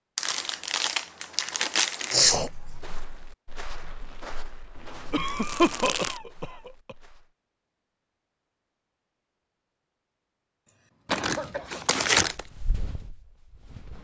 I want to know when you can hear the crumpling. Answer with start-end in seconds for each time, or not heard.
0.1-2.2, 4.8-6.2, 11.1-12.4.